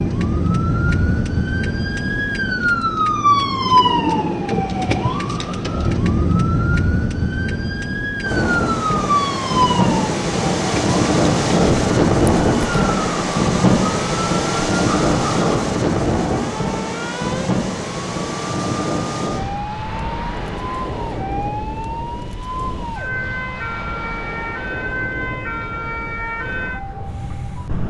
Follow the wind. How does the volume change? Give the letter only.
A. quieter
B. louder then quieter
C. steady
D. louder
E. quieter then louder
A.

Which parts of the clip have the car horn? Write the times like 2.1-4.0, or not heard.
not heard.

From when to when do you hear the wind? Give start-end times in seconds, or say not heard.
8.2-27.8.